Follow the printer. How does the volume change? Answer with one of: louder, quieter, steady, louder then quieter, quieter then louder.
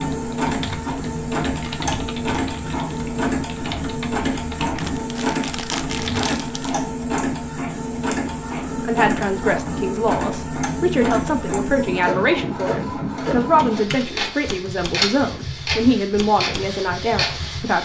steady.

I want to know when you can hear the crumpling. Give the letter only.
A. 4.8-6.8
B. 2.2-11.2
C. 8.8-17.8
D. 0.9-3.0
A.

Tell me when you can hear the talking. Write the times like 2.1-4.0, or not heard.
8.8-17.8.